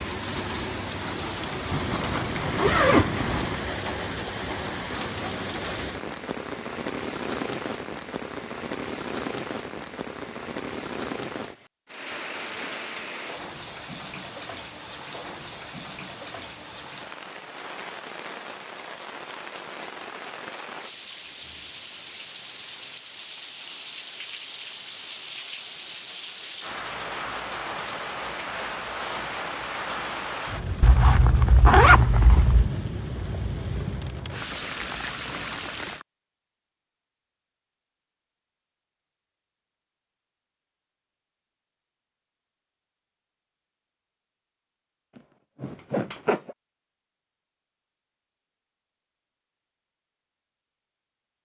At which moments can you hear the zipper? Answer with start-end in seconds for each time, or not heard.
1.7-3.6, 30.8-32.7, 45.1-46.5.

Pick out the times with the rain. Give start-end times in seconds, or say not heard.
0.0-36.0.